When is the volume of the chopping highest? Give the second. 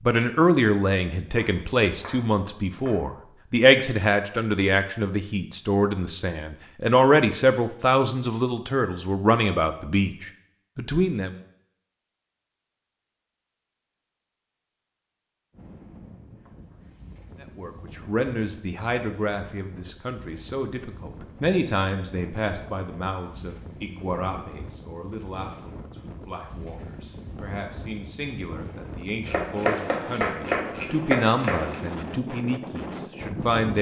30 s.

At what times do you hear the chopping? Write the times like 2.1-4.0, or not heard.
1.2-3.0, 29.2-31.9.